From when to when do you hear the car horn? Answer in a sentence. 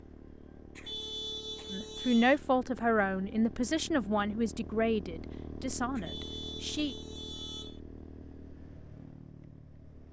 The car horn can be heard from 0.8 to 2.4 s and from 6.0 to 7.8 s.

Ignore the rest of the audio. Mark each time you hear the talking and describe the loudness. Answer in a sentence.
The talking can be heard from 1.7 to 7.0 s, getting quieter.